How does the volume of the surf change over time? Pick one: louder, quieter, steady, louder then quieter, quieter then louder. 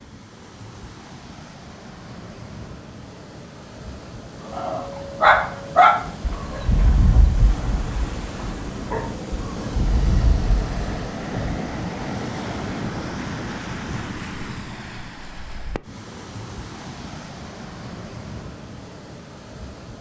louder then quieter.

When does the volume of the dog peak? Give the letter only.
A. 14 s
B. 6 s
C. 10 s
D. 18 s
B.